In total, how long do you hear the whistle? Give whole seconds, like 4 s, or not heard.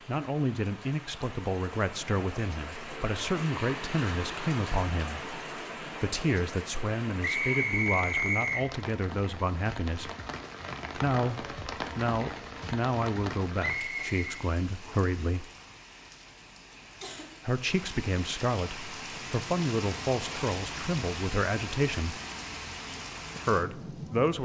3 s.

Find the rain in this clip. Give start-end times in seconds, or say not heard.
0.0-24.3.